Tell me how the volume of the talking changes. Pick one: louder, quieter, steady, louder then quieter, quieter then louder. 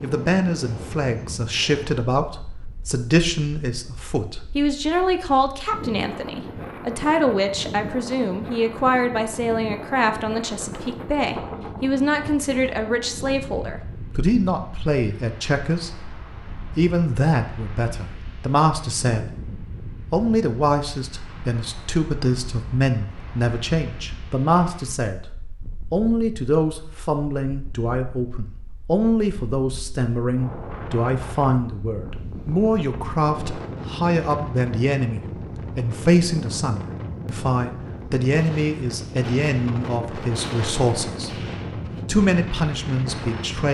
steady.